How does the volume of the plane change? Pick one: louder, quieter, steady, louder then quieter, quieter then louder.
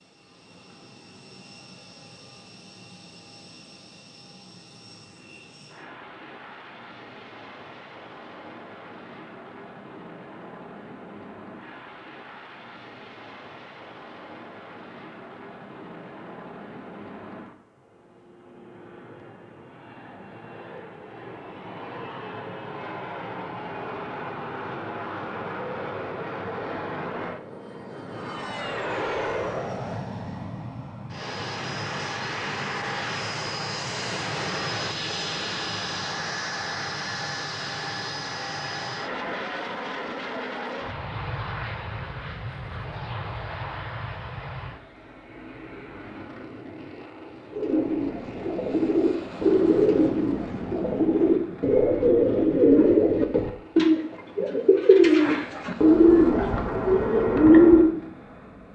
louder then quieter.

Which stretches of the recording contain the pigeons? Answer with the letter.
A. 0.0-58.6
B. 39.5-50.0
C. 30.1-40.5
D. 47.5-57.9
D.